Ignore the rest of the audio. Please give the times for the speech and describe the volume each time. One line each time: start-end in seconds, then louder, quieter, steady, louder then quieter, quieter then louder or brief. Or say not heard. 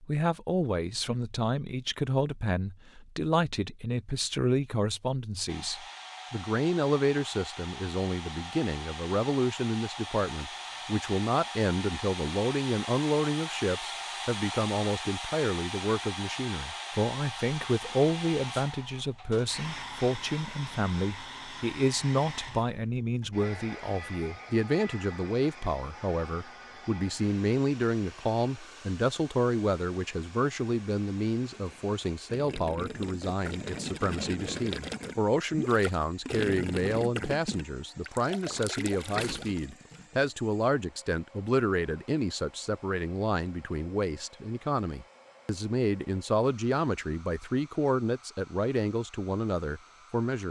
0.0-50.4 steady.